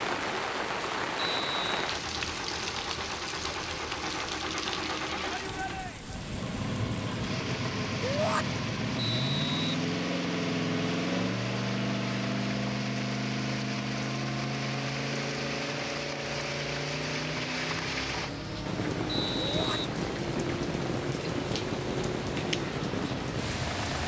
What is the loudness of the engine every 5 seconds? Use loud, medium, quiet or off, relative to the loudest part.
medium, loud, loud, medium, medium.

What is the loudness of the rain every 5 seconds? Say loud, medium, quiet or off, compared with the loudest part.
loud, medium, medium, loud, loud.